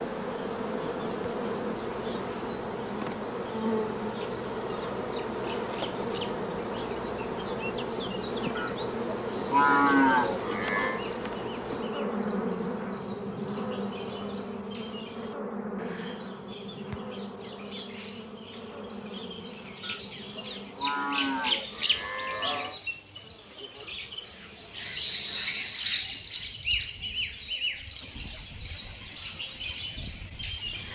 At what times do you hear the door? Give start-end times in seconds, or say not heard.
not heard.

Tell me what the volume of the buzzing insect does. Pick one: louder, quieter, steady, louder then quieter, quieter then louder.
quieter.